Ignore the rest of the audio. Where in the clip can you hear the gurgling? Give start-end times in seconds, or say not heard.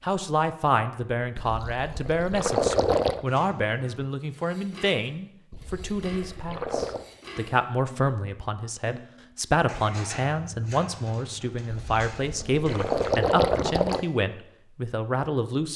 1.4-3.2, 5.5-7.0, 11.7-14.0.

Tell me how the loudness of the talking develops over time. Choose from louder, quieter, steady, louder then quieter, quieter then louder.
steady.